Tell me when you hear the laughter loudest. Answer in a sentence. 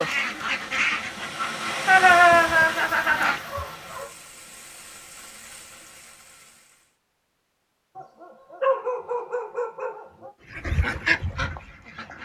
The loudest moment of the laughter is at 2 seconds.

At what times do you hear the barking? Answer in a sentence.
The barking can be heard from 2.0 to 4.1 s and from 8.0 to 10.3 s.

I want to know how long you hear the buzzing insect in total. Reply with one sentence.
The buzzing insect can't be heard in this clip.